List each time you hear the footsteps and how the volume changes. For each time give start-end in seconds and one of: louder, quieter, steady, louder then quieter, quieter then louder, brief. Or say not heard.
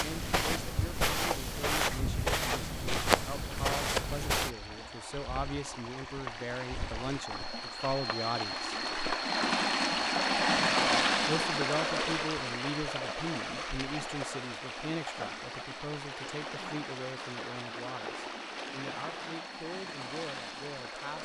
0.0-4.5 steady.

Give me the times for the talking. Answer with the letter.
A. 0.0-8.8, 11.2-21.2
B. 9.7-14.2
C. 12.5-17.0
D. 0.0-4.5
A.